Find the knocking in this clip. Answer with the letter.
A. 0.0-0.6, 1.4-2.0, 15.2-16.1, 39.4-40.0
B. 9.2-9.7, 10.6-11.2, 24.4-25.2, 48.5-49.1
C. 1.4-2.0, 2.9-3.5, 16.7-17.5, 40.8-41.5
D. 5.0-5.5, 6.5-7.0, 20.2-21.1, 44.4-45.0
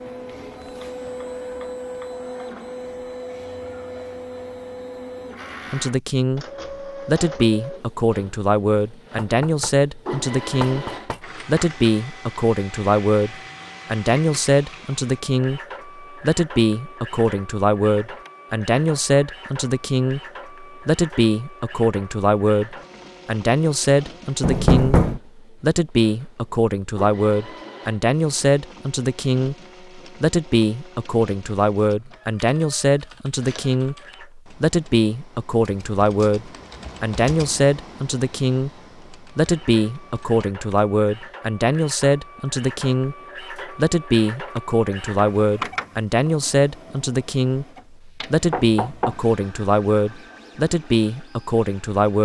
B.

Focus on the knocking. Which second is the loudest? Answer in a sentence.
The volume of the knocking peaks at 25 seconds.